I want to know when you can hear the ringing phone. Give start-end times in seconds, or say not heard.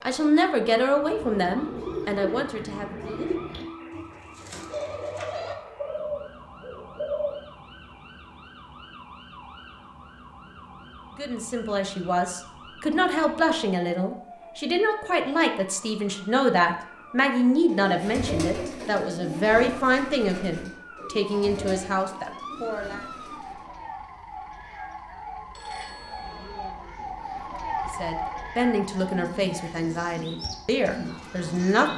3.5-4.3, 25.6-26.8.